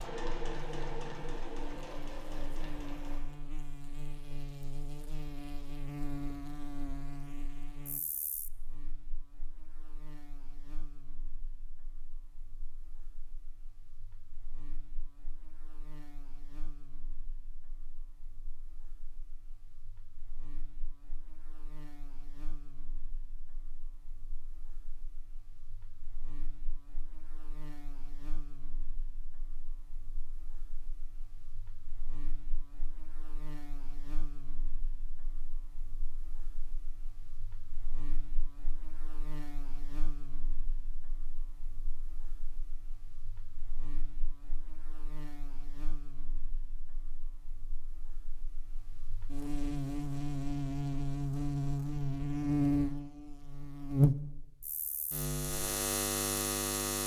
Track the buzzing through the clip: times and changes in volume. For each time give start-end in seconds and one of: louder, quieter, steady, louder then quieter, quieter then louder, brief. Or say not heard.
0.2-57.0 quieter then louder.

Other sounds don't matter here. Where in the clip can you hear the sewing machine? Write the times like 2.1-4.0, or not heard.
0.0-3.2.